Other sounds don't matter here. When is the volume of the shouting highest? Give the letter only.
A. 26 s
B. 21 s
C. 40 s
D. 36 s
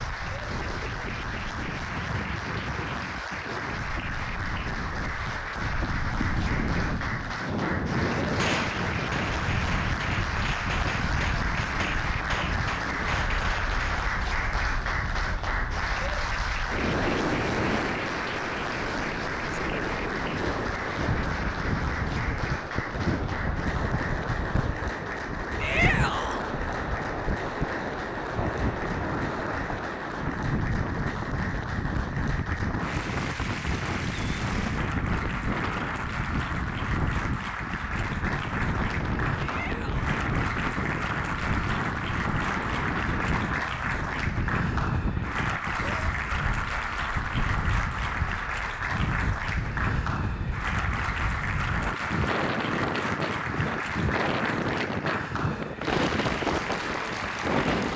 A.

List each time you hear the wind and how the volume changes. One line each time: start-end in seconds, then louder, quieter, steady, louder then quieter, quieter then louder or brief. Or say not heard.
0.0-57.9 steady.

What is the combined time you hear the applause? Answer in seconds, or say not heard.
58 s.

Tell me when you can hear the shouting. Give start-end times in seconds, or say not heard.
25.6-26.4, 39.4-40.1.